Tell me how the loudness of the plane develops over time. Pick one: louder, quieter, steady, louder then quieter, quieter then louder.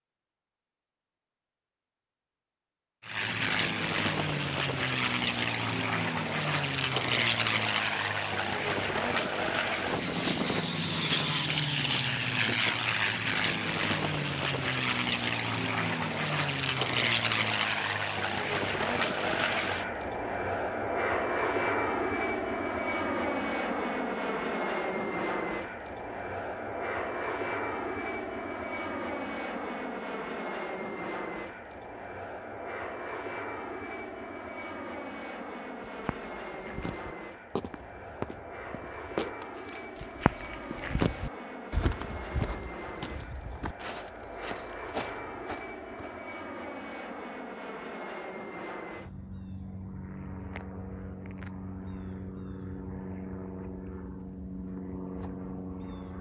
quieter.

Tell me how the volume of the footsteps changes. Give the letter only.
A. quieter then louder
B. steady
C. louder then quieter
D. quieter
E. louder
C.